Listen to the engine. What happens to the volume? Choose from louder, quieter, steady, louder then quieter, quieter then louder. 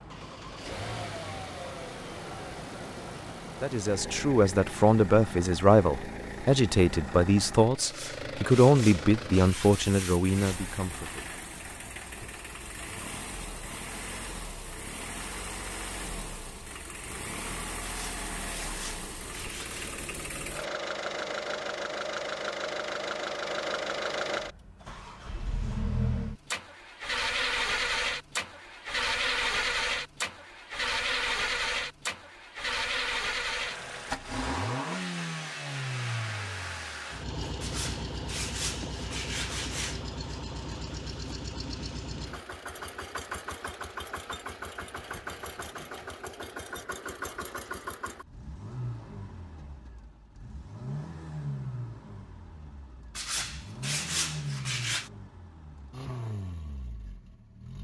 louder then quieter.